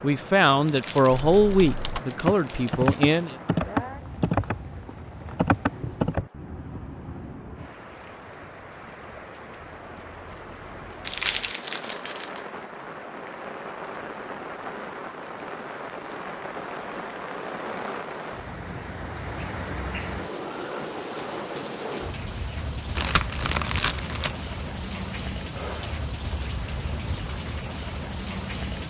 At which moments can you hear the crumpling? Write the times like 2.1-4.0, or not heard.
0.7-3.4, 11.1-12.4, 22.9-24.4.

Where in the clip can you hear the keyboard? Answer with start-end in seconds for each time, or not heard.
1.4-6.2.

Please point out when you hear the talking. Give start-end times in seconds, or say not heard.
0.0-3.4.